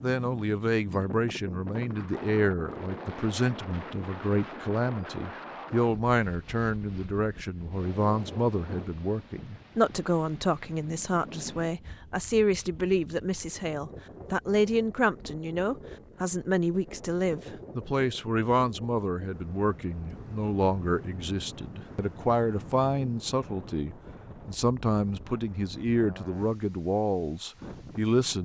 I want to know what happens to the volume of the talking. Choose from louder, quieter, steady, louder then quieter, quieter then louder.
steady.